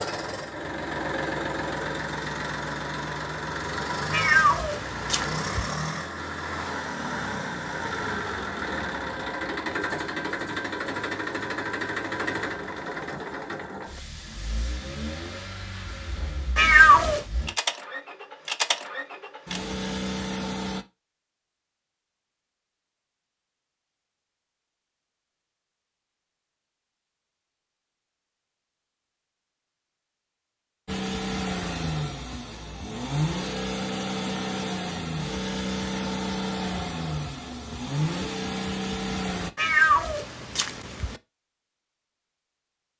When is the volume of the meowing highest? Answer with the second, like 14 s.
17 s.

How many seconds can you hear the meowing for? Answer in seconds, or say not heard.
4 s.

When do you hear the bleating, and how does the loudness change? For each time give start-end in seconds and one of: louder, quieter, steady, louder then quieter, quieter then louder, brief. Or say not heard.
not heard.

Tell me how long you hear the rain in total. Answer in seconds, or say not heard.
not heard.